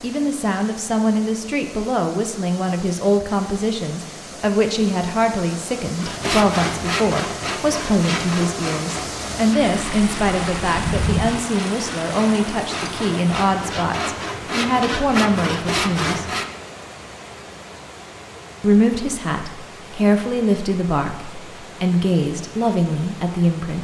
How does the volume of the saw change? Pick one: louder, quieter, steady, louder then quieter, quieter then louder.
quieter then louder.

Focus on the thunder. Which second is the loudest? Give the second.
11 s.